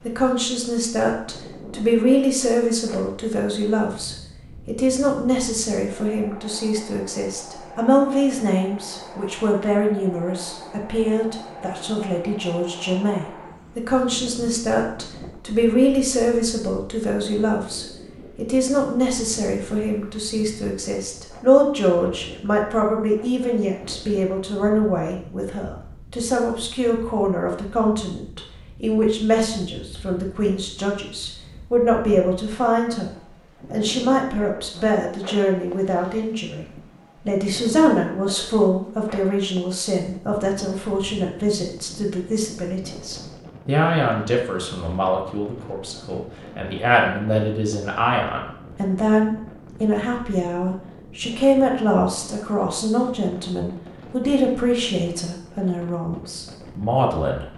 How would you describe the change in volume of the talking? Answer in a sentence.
The volume of the talking stays about the same.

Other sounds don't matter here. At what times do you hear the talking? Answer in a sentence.
You can hear the talking from 0.0 to 57.5 s.